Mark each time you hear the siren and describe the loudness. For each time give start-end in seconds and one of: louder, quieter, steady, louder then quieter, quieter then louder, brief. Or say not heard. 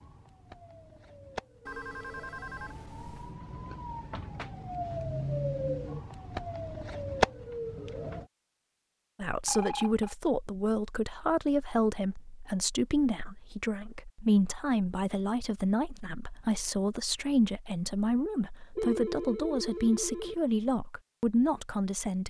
0.0-8.2 louder.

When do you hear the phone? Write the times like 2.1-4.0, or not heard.
1.6-3.4, 9.4-10.2, 18.8-20.4.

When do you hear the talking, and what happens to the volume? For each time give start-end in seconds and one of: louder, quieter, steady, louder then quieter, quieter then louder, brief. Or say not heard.
9.2-22.2 steady.